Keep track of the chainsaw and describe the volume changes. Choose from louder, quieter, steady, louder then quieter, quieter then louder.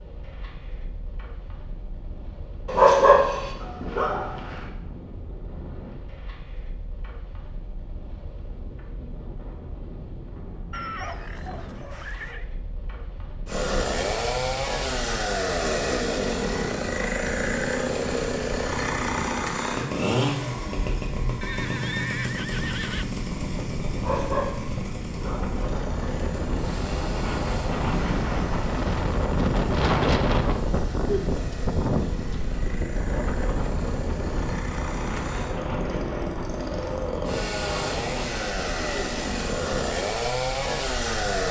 quieter then louder.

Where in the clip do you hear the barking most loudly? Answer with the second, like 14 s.
3 s.